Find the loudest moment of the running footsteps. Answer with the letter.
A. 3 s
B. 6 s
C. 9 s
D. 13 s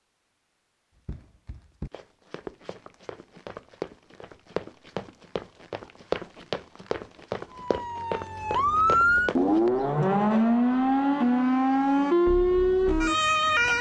B.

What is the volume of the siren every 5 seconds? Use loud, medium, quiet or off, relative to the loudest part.
off, loud, loud.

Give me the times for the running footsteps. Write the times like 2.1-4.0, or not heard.
1.1-9.7.